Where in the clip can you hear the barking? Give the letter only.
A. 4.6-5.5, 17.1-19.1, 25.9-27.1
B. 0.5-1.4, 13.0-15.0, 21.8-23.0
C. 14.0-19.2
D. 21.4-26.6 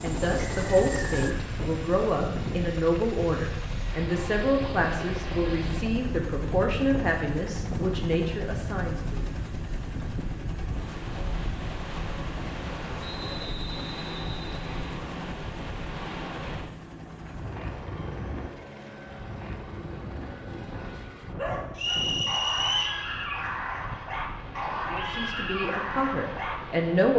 D.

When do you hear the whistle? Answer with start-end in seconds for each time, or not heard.
0.5-1.4, 13.0-15.0, 21.8-23.0.